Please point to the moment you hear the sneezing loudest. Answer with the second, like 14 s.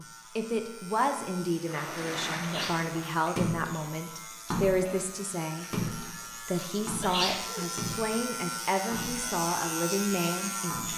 7 s.